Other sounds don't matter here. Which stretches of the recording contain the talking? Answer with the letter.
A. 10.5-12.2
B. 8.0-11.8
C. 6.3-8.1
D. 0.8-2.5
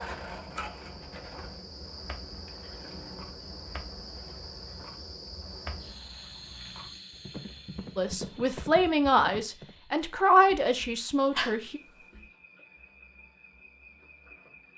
B.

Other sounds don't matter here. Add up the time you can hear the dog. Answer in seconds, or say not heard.
2 s.